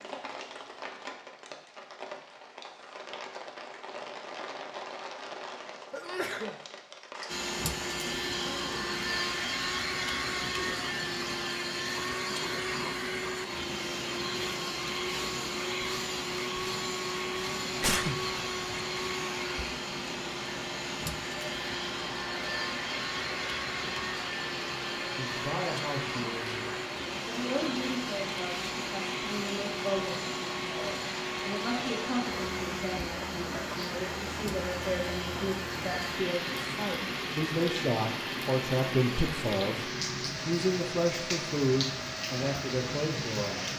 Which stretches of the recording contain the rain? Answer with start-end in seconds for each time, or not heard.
0.0-43.7.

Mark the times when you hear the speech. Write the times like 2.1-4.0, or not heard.
25.1-43.7.